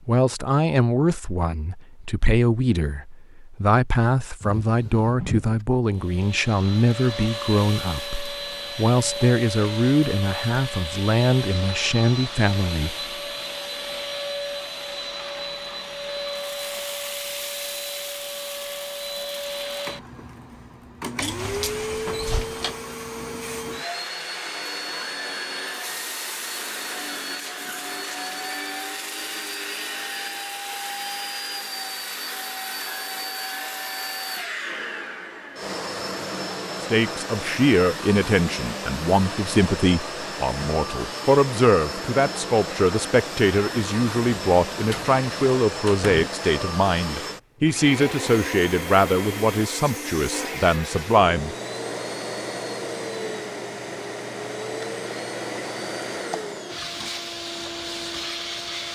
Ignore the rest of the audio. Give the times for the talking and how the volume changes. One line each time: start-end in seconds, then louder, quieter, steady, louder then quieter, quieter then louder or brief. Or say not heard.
0.1-13.1 steady
36.9-51.5 steady.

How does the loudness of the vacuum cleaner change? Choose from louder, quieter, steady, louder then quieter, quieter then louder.
steady.